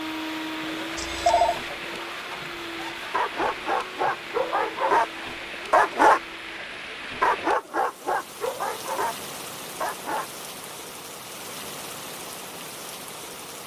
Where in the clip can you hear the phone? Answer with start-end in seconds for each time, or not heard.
0.9-1.6.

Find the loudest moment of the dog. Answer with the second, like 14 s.
6 s.